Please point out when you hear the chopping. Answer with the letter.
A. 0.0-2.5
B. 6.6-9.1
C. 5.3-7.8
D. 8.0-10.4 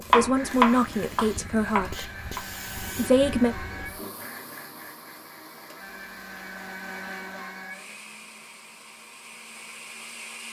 A.